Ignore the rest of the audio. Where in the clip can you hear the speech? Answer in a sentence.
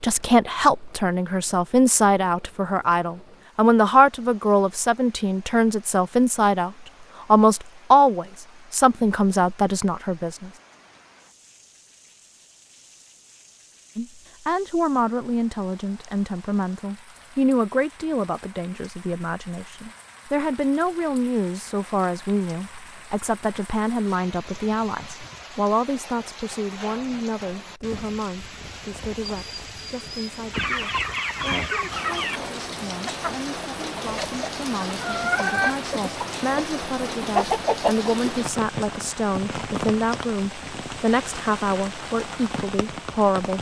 You can hear the speech from 0.0 to 10.5 s and from 13.9 to 43.5 s.